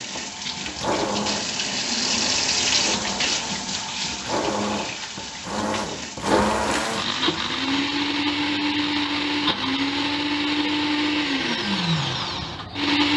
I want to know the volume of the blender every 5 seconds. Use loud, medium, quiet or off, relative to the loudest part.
medium, loud, loud.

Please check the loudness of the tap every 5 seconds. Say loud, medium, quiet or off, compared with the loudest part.
loud, medium, off.